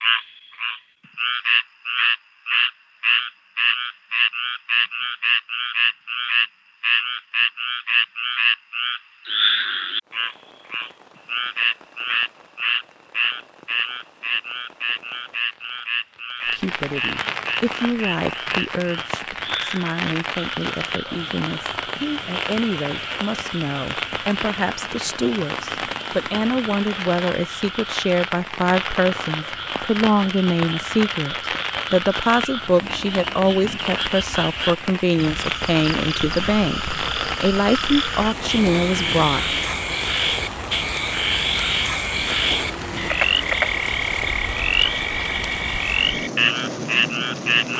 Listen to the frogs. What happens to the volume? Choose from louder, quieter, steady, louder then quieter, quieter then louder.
quieter then louder.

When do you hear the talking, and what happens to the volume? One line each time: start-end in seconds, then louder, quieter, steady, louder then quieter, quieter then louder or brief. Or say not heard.
16.4-39.5 louder.